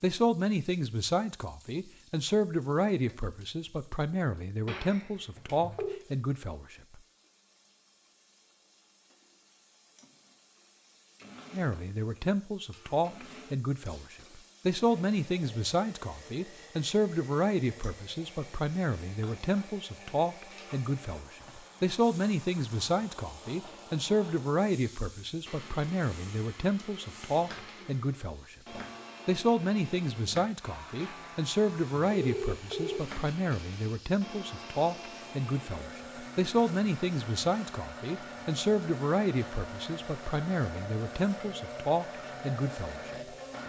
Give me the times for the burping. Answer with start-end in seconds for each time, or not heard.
not heard.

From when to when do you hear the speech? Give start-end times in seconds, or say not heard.
0.0-7.0, 11.5-43.1.